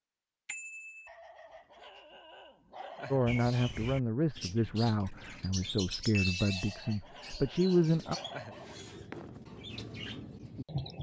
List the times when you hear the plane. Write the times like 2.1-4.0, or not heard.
not heard.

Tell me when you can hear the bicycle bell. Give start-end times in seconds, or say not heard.
0.5-1.1, 6.1-6.9.